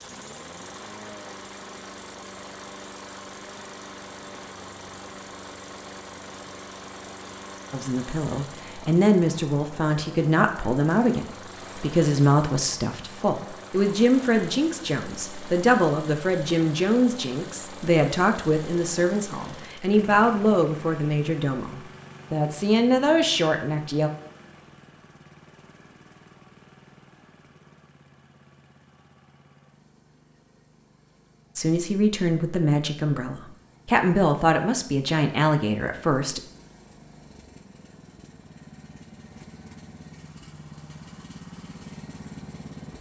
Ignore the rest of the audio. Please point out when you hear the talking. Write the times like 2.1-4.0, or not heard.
7.7-24.1, 31.6-36.4.